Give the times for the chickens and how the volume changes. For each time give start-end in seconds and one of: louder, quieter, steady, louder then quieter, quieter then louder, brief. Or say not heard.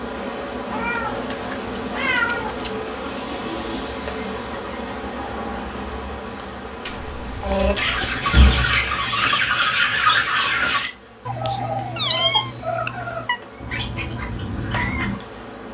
7.4-15.2 quieter.